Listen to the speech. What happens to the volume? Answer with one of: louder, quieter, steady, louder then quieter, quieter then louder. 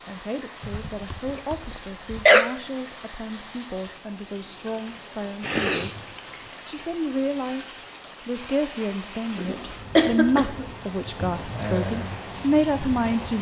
louder.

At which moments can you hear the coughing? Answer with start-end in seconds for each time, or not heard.
0.6-2.5, 5.4-6.2, 9.3-10.7.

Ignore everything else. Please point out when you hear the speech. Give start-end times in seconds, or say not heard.
0.1-13.3.